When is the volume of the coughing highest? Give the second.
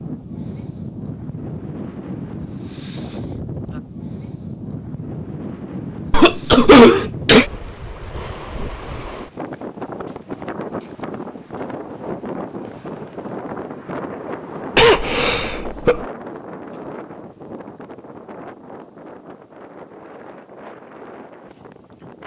7 s.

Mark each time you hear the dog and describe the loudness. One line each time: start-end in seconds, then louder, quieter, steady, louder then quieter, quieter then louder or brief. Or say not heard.
not heard.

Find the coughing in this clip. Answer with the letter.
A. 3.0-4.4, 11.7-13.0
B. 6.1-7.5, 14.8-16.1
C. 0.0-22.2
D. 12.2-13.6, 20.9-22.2
B.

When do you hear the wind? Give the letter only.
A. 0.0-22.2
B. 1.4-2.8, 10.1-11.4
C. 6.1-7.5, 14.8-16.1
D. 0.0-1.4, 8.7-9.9
A.